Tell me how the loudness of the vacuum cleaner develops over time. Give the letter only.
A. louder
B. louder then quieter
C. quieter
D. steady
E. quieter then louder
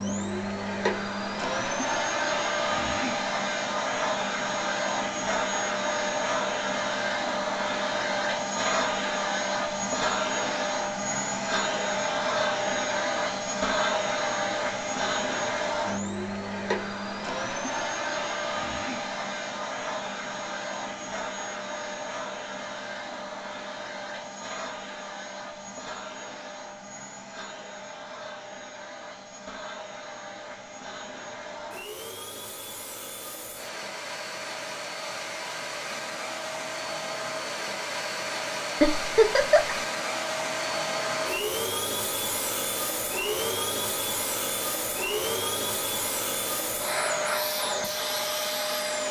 E.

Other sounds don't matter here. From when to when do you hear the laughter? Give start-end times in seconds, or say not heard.
38.8-39.8.